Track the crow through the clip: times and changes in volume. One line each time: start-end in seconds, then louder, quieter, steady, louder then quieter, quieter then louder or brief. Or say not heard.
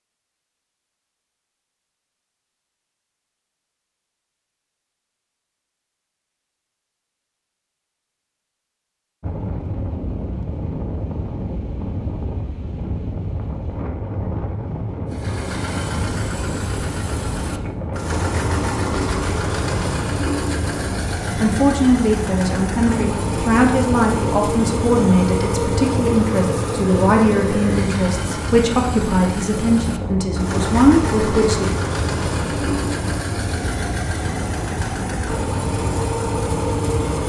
not heard.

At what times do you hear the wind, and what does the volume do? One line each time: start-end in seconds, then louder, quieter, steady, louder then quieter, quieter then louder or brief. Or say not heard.
9.2-37.2 steady.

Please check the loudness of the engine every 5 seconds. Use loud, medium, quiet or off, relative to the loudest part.
off, off, off, loud, loud, loud, loud, loud.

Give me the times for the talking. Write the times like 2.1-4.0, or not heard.
21.4-31.7.